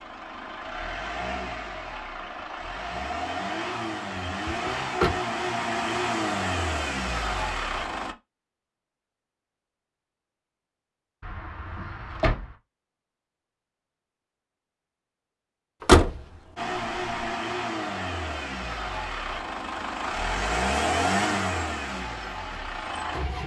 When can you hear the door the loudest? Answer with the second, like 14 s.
16 s.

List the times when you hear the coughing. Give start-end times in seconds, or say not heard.
not heard.